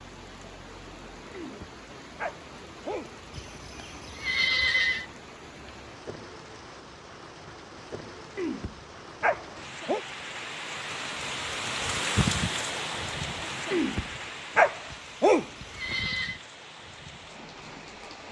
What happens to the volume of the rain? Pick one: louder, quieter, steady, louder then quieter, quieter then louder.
louder then quieter.